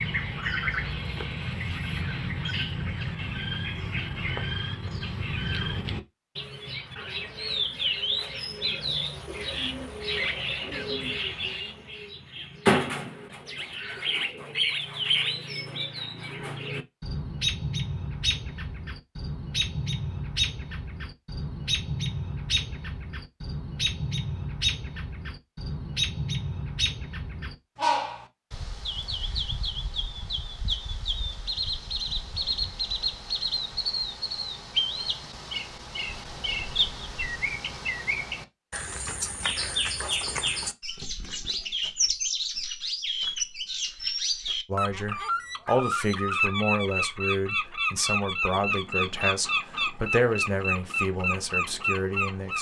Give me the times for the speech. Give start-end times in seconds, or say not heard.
44.6-52.5.